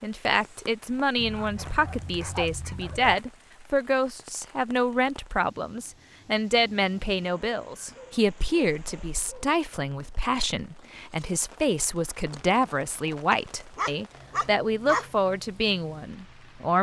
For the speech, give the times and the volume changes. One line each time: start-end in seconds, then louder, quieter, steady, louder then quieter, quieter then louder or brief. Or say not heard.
0.0-16.7 steady.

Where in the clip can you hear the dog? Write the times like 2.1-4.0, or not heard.
1.1-3.1, 7.2-9.4, 13.3-15.1.